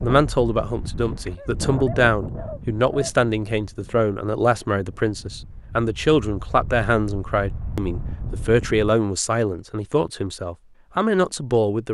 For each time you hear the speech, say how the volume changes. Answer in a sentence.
You can hear the speech from 0.0 to 11.9 s, at a steady volume.